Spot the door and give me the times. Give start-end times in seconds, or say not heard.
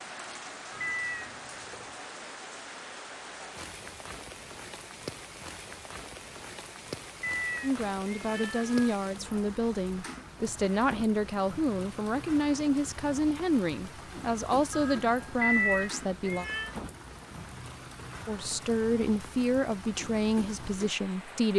not heard.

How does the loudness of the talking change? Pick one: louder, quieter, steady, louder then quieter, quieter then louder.
steady.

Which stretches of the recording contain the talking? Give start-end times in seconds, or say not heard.
7.6-16.4, 18.2-21.5.